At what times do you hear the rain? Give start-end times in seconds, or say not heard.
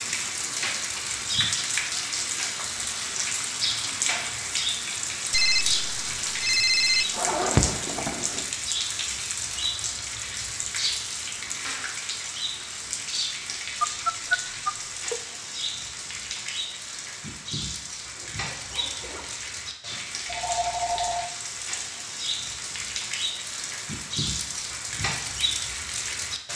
0.0-26.5.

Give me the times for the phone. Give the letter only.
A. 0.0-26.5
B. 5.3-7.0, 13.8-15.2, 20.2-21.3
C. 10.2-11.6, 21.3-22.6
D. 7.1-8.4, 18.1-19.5
B.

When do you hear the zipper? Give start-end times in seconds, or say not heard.
7.1-8.4, 18.1-19.5.